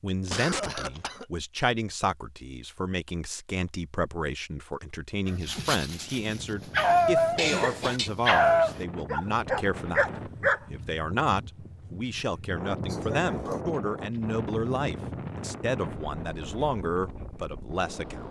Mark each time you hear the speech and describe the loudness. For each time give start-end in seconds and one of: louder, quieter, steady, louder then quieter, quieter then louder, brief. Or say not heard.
0.0-18.2 steady.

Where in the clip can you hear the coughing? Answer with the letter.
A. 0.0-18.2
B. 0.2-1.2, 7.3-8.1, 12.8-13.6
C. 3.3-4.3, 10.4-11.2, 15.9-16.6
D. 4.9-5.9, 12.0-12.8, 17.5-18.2
B.